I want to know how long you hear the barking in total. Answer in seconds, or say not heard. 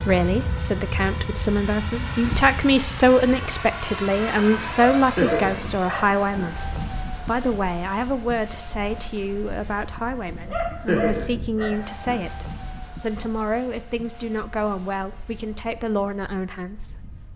4 s.